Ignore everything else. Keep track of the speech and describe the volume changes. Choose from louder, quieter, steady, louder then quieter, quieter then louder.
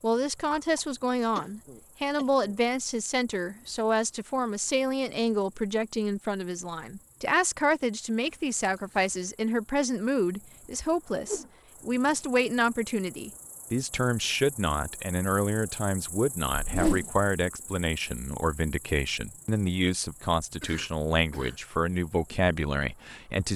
steady.